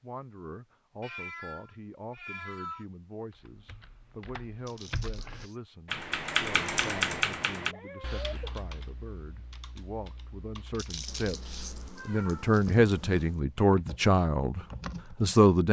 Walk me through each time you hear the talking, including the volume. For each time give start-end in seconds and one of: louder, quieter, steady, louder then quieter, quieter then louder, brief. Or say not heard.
0.0-15.6 louder.